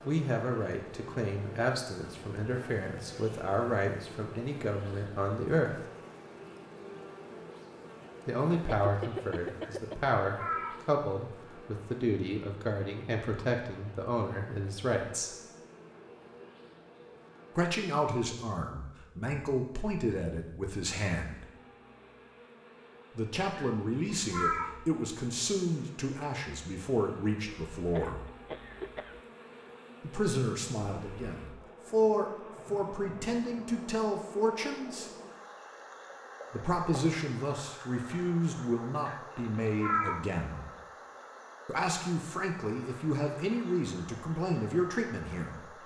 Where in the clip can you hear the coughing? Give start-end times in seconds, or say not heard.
8.8-10.1, 27.9-29.2.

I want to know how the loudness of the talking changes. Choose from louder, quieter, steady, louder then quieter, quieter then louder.
steady.